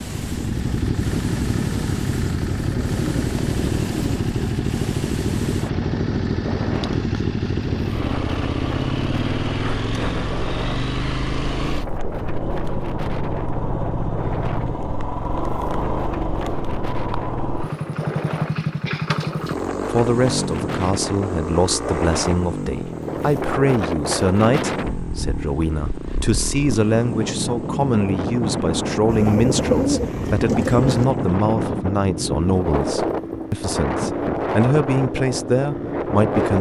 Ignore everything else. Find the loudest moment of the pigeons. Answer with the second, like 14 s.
30 s.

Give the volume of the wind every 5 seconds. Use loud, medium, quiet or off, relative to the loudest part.
quiet, medium, medium, medium, loud, loud, loud, loud.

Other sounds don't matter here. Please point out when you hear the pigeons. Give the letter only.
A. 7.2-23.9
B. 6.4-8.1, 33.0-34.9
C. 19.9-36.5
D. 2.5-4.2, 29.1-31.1
D.